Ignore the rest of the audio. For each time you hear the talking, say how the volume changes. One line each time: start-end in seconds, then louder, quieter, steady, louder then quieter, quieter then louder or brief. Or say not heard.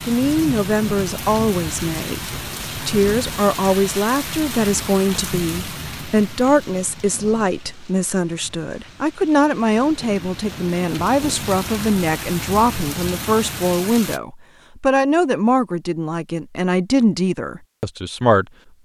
0.0-18.4 steady.